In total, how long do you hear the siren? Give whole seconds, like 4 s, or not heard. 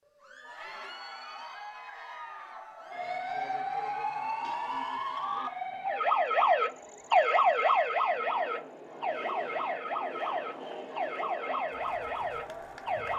10 s.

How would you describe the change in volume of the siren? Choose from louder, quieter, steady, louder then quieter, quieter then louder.
louder then quieter.